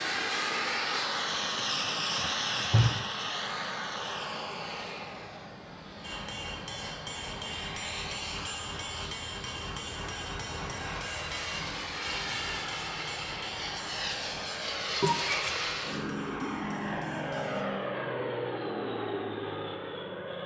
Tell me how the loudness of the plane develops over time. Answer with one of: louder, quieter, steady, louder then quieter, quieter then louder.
quieter then louder.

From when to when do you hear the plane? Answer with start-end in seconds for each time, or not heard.
0.0-20.4.